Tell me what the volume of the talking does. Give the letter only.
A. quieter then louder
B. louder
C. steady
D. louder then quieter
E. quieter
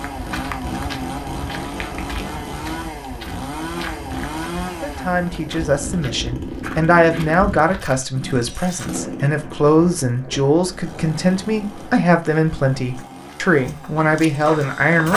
C.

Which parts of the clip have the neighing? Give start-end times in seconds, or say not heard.
not heard.